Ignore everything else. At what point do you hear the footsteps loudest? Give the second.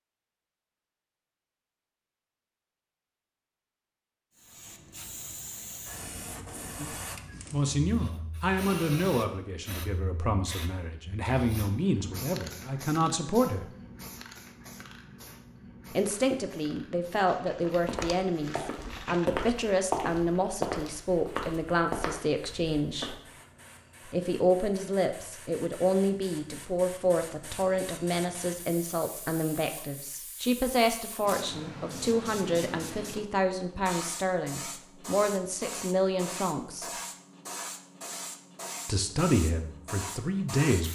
20 s.